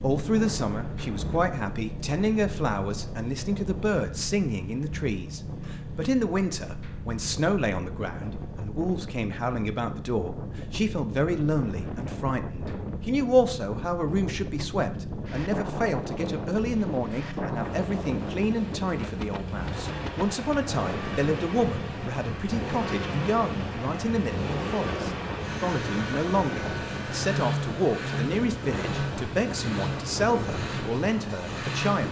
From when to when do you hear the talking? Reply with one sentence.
The talking can be heard from 0.0 to 32.0 s.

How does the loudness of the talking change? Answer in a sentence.
The volume of the talking stays about the same.